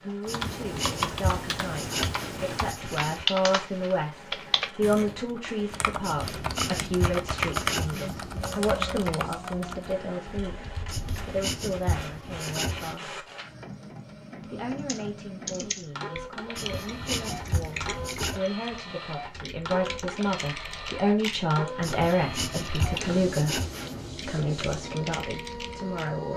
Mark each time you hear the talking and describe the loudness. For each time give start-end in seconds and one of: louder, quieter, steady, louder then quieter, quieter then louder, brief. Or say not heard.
0.0-13.2 louder then quieter
14.4-23.6 louder
24.2-26.3 brief.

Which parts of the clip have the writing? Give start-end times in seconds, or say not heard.
0.2-3.2, 6.0-8.7, 10.9-12.9, 16.6-18.4, 21.8-24.1.